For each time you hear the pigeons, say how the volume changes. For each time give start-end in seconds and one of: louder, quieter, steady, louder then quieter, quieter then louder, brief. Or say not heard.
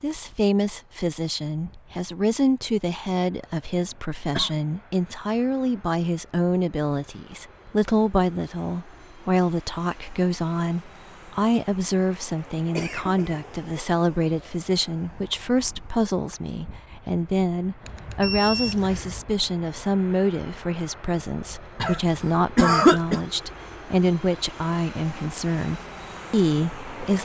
not heard.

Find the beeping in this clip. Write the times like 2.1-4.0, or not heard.
17.8-19.2.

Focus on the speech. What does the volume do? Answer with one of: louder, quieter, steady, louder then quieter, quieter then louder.
steady.